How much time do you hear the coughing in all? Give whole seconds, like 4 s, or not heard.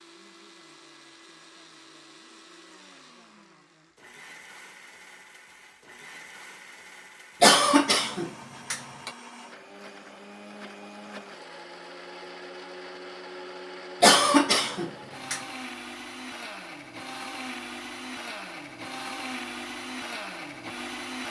3 s.